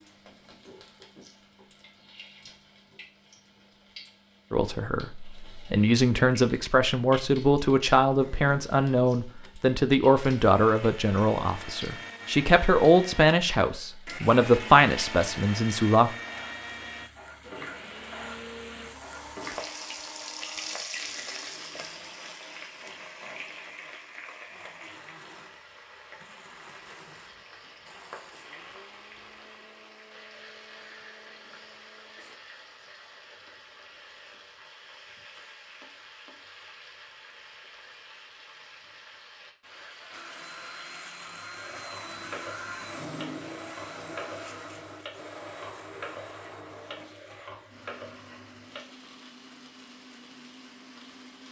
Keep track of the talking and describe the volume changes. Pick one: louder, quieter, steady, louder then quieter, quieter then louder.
steady.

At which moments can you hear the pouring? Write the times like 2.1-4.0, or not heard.
not heard.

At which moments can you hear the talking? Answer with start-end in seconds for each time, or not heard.
4.5-16.1.